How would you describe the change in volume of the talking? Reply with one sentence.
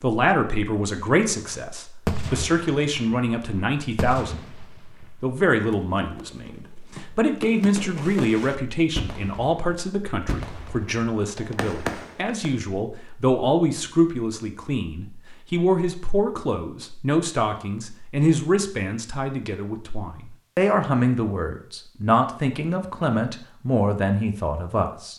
The volume of the talking stays about the same.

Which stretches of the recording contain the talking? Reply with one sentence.
The talking can be heard from 0.0 to 25.1 s.